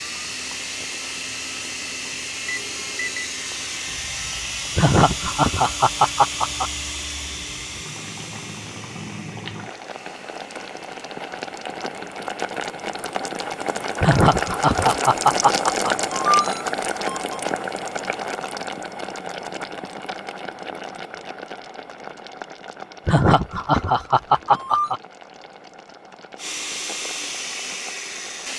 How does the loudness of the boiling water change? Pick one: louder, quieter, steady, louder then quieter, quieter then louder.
louder then quieter.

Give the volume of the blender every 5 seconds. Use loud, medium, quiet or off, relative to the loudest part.
loud, loud, quiet, off, off, loud.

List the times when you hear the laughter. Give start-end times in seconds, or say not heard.
4.8-6.7, 14.0-15.9, 23.1-25.0.